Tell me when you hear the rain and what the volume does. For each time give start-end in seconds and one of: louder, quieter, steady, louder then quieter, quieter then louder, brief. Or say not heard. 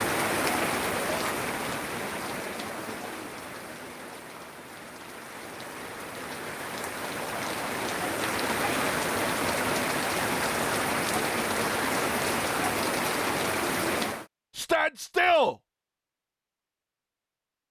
0.0-14.2 quieter then louder.